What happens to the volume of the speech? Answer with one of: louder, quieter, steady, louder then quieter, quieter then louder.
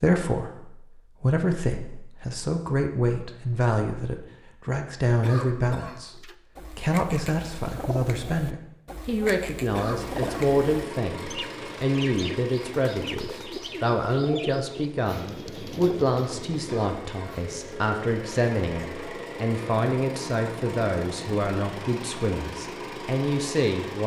steady.